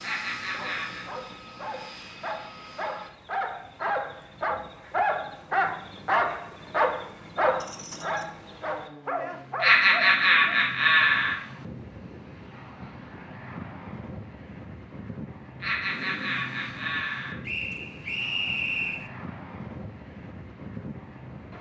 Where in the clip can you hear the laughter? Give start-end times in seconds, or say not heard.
0.0-1.1, 9.6-11.3, 15.6-17.4.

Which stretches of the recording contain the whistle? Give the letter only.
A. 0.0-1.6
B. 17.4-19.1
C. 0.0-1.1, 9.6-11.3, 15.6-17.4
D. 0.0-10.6
B.